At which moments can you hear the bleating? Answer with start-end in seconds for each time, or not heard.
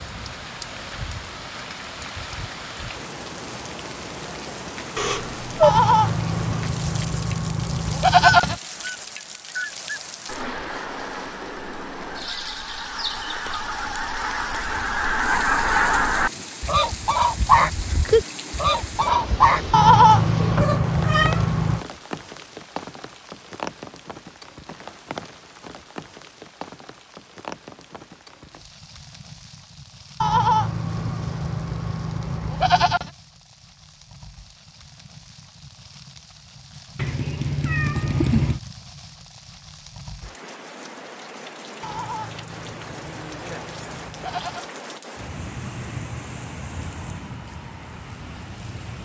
5.6-8.6, 19.7-21.8, 30.2-33.1, 41.8-44.7.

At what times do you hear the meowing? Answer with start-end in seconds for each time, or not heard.
5.0-5.7, 20.4-21.4, 37.0-38.6.